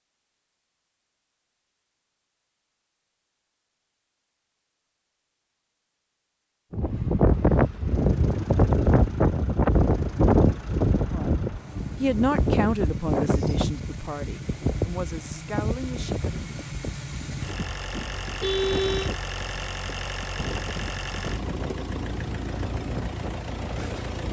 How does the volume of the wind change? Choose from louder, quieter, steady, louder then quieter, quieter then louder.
quieter.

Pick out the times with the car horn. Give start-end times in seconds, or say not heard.
18.4-19.1.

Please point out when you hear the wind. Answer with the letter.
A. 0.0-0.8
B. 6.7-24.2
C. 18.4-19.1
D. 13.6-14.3
B.